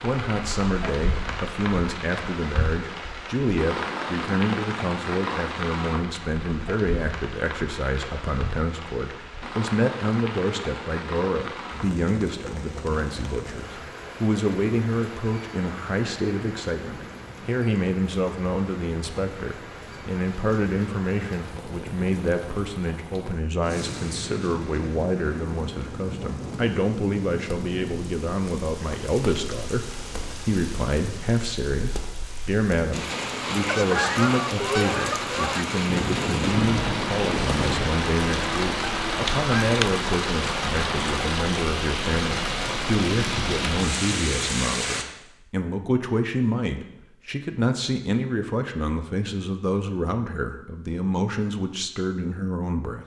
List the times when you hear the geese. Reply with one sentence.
The geese can be heard from 33.6 to 40.0 s.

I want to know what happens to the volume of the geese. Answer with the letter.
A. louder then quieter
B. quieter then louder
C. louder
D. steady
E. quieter
E.